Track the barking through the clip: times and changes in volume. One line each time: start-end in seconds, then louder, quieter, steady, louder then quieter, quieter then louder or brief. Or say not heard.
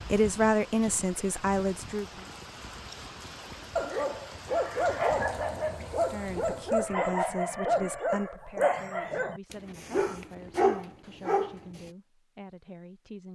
3.8-11.9 steady.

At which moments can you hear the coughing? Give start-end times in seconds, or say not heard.
not heard.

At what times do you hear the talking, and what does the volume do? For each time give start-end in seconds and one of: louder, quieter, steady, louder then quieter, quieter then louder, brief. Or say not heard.
0.1-2.2 brief
6.0-13.3 quieter.